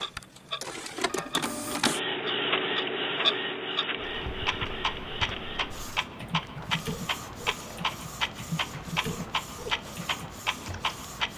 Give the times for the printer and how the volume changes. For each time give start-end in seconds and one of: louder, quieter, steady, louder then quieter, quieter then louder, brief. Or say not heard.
0.0-11.3 quieter.